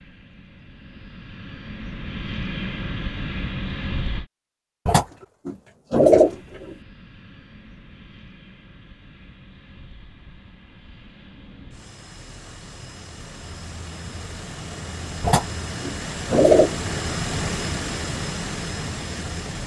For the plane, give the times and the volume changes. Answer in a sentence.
You can hear the plane from 0.0 to 4.2 s, getting louder; and from 6.0 to 19.6 s, getting louder.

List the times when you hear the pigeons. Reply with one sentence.
The pigeons can be heard from 4.8 to 6.7 s and from 15.2 to 17.1 s.